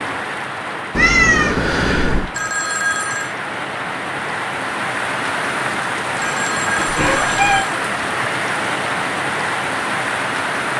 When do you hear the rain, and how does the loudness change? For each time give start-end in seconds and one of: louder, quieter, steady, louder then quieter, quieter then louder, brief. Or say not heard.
0.0-10.7 louder.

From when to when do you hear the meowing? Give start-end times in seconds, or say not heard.
0.9-2.3, 6.8-7.7.